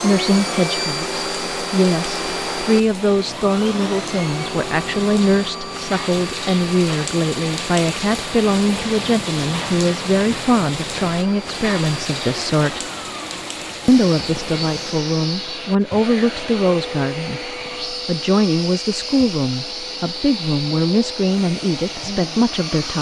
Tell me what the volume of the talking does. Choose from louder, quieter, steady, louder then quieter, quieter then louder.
steady.